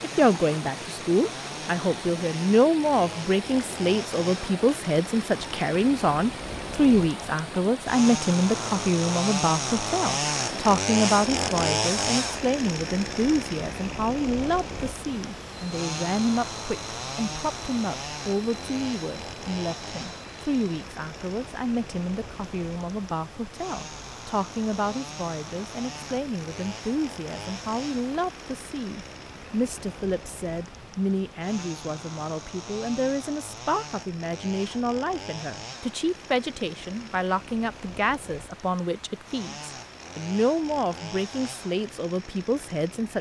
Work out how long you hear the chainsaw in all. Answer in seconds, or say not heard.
43 s.